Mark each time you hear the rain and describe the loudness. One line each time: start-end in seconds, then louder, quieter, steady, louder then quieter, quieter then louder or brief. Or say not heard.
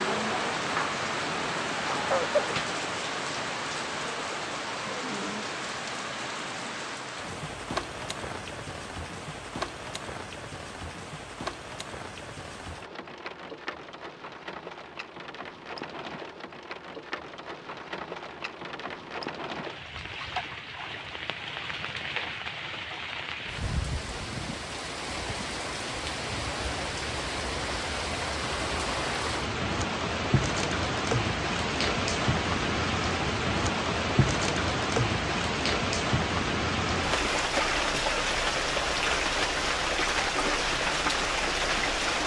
0.0-42.2 quieter then louder.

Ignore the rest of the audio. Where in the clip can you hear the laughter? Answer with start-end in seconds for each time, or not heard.
1.8-2.5.